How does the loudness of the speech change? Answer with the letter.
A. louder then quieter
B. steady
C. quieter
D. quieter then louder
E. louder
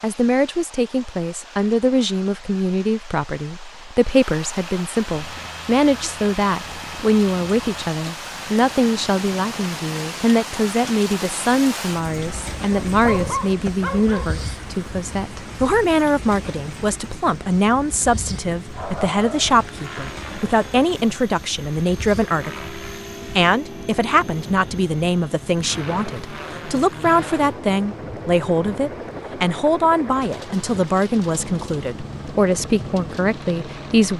B.